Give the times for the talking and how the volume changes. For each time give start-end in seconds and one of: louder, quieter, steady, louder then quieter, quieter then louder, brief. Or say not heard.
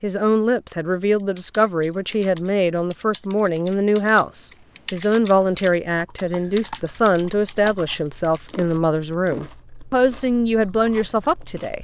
0.0-11.7 steady.